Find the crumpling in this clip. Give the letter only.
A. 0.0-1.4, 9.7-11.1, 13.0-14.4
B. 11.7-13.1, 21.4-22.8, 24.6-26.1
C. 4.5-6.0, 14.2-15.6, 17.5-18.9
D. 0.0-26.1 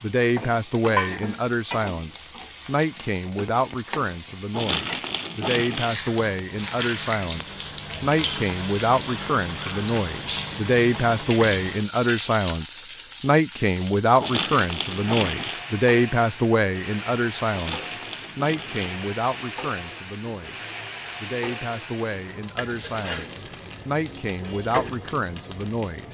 C.